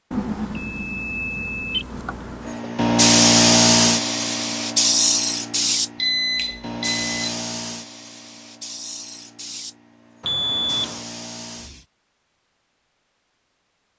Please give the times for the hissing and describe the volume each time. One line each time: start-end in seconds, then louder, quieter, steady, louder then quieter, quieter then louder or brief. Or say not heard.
2.4-11.8 quieter.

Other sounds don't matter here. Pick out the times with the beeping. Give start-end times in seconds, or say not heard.
0.1-2.6, 6.0-7.3, 10.2-11.1.